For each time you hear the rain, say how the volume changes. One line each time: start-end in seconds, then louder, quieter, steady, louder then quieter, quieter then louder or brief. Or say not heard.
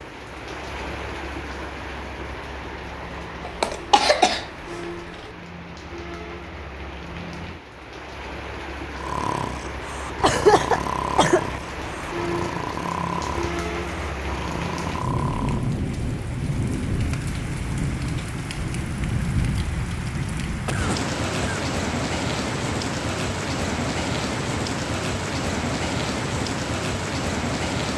0.0-27.9 louder.